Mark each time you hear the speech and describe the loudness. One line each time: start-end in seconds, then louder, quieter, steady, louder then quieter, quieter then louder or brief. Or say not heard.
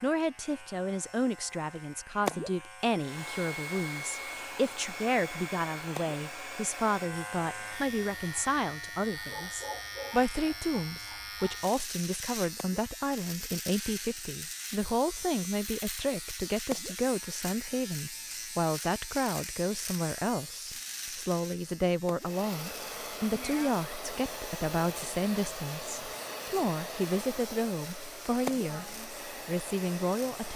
0.0-30.5 steady.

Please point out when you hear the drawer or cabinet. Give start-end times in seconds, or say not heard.
not heard.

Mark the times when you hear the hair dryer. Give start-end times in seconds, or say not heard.
3.0-8.6, 22.1-30.5.